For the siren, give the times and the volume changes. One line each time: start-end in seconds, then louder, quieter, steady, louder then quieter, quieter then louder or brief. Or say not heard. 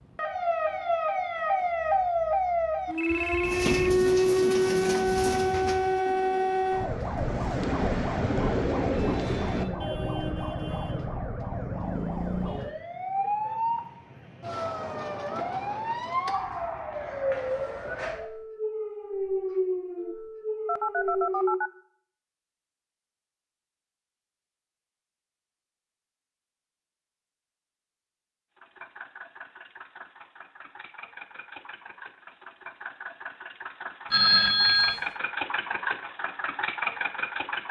0.1-21.6 quieter.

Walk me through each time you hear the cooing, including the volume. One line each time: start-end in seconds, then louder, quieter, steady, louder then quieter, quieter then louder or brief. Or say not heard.
3.4-9.7 quieter then louder.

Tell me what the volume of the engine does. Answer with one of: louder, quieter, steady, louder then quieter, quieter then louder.
louder.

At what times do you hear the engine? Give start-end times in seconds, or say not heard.
28.6-37.6.